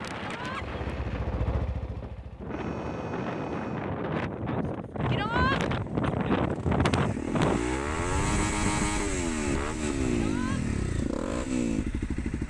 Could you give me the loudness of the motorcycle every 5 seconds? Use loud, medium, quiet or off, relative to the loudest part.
medium, loud, loud.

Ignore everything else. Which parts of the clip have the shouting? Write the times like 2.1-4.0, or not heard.
0.2-0.7, 5.0-5.6, 10.1-10.6.